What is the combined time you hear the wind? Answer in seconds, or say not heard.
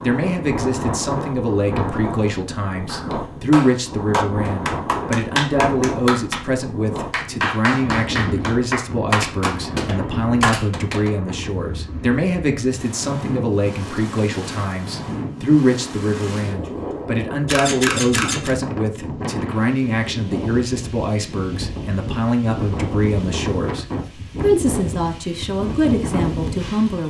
27 s.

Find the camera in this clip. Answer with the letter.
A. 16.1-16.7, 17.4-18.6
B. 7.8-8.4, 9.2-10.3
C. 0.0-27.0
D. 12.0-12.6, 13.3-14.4
A.